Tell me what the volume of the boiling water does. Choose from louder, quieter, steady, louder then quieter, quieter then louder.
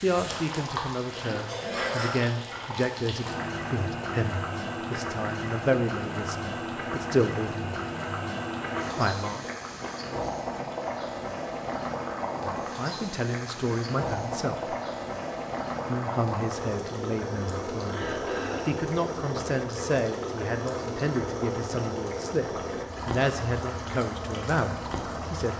steady.